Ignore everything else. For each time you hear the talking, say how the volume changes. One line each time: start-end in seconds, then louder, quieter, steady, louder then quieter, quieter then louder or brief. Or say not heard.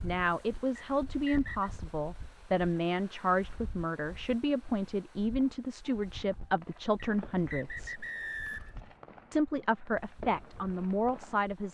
0.0-8.1 steady
9.3-11.6 brief.